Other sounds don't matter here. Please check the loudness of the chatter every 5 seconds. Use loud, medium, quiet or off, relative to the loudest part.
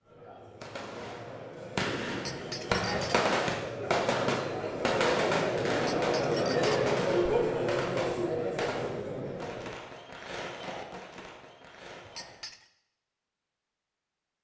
medium, loud, off.